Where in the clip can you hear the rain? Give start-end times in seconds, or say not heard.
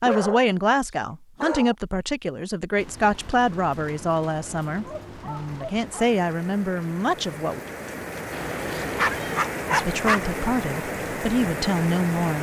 2.8-12.3.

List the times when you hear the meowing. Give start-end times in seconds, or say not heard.
8.3-9.4.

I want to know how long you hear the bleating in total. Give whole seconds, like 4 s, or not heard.
not heard.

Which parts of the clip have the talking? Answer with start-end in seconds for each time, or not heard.
0.0-7.6, 9.7-12.3.